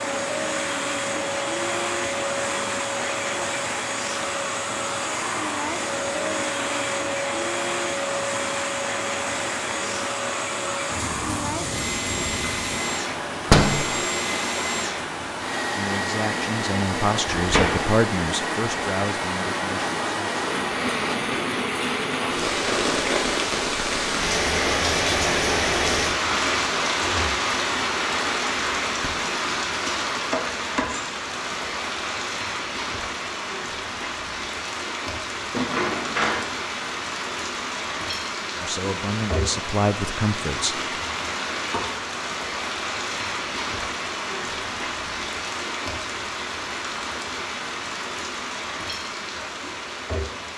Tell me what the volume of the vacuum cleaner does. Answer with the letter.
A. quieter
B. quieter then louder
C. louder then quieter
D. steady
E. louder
D.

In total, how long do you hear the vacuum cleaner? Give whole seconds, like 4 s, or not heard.
21 s.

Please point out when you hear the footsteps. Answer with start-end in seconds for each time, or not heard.
not heard.